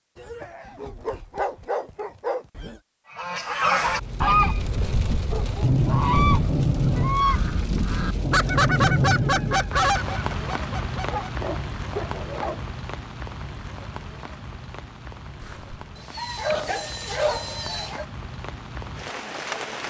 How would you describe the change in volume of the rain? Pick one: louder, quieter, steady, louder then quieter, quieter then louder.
quieter.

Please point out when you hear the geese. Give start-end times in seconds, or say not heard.
3.1-11.5.